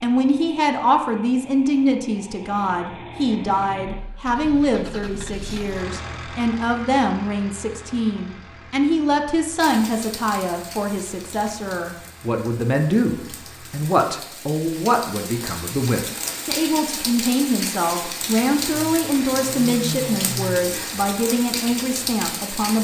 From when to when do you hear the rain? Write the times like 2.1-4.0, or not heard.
9.6-22.7.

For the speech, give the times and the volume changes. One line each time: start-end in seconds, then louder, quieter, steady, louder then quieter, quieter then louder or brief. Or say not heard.
0.0-22.7 steady.